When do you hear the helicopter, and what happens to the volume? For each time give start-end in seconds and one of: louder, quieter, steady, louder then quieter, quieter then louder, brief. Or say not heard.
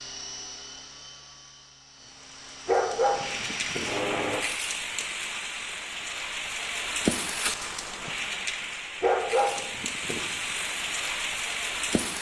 0.0-4.5 quieter then louder.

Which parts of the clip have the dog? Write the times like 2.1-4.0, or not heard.
2.6-4.0, 9.0-10.4.